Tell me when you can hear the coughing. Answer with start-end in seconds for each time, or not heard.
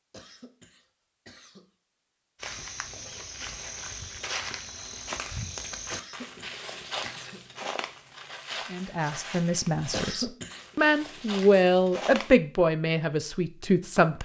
0.1-1.7, 5.9-7.5, 9.9-10.7.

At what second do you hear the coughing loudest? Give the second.
10 s.